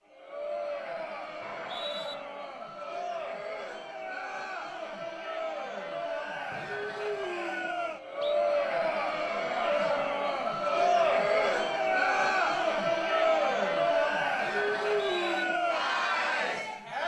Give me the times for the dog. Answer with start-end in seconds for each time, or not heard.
not heard.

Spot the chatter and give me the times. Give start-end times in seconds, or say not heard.
0.0-17.0.